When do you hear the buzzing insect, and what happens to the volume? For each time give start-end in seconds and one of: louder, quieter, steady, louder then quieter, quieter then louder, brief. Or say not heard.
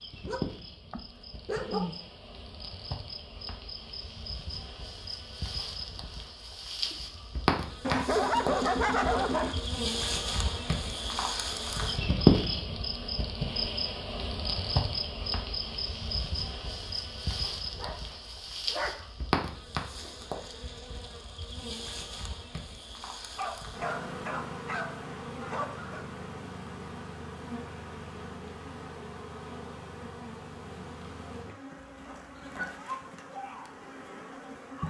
0.0-34.8 louder then quieter.